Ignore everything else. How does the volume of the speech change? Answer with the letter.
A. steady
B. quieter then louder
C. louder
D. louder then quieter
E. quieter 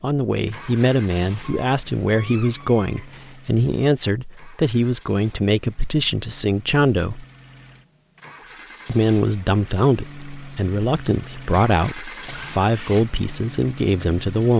A.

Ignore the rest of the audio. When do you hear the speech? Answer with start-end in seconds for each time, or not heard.
0.0-7.2, 8.8-14.5.